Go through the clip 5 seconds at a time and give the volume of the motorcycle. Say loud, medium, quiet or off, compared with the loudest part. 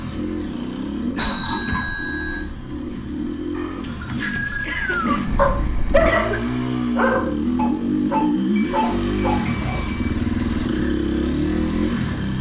medium, loud, loud.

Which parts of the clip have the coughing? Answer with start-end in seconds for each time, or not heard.
0.8-1.9, 4.7-6.5, 8.8-10.0.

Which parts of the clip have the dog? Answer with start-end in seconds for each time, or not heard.
3.5-9.3.